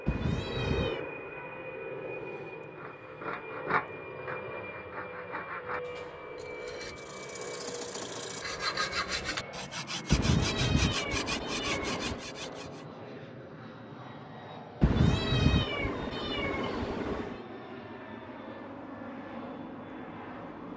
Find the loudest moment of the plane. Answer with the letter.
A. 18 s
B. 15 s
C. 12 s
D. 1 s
D.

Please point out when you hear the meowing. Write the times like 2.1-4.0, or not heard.
0.1-1.0, 10.1-12.2, 14.8-17.4.